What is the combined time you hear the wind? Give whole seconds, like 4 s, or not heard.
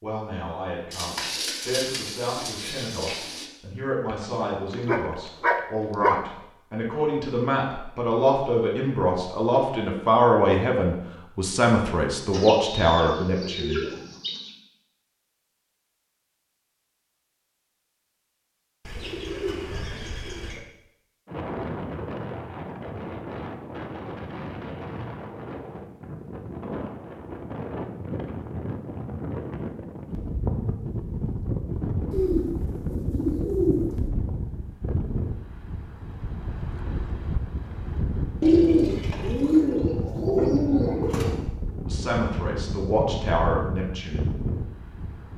24 s.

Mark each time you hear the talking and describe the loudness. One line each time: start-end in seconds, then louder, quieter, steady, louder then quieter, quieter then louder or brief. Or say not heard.
0.0-13.8 louder
41.9-44.2 brief.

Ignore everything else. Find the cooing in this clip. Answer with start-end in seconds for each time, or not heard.
0.9-3.5, 12.3-14.5, 18.9-20.6, 32.1-34.1, 38.4-41.4.